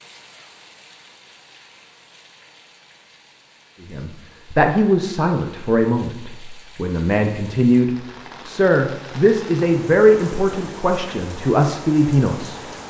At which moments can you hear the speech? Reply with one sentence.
You can hear the speech from 3.9 to 12.6 s.